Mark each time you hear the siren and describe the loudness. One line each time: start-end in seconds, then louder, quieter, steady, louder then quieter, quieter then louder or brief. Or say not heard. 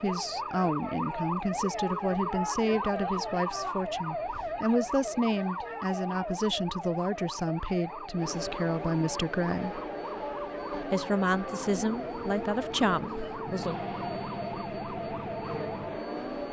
0.0-16.4 quieter.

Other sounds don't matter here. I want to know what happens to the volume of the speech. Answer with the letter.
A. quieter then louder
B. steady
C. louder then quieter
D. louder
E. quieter
B.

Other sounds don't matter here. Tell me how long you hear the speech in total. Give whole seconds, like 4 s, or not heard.
13 s.